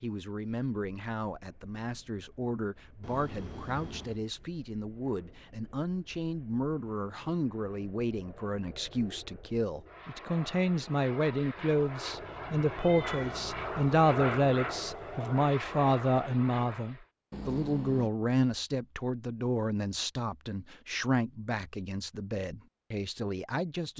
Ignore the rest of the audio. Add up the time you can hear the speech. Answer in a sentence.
The speech can be heard for 24 seconds in total.